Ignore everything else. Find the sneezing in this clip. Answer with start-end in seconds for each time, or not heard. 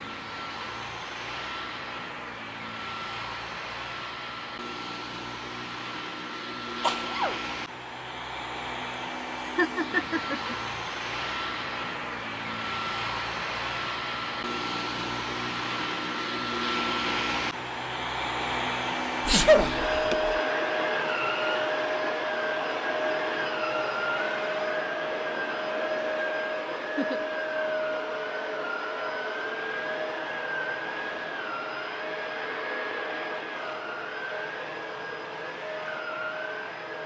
6.8-7.4, 19.2-20.1.